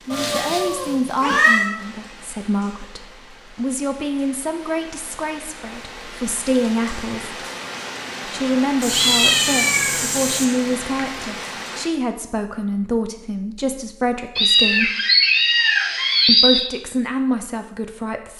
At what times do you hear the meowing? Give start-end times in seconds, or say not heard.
0.1-1.7, 8.8-10.4, 14.3-16.6.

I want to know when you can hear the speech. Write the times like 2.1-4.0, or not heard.
0.1-7.5, 8.2-14.9, 16.2-18.3.